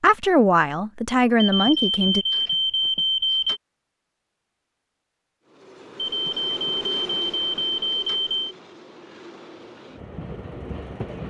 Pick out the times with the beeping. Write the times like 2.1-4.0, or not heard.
1.4-3.6, 6.0-8.3.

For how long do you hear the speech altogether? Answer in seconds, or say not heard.
2 s.